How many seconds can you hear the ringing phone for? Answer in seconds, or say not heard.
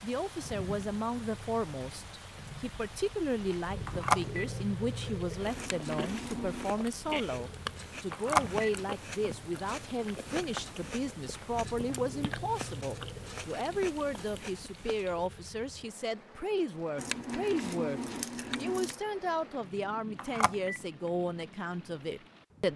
2 s.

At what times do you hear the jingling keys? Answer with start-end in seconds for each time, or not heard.
5.5-6.8, 16.9-19.0.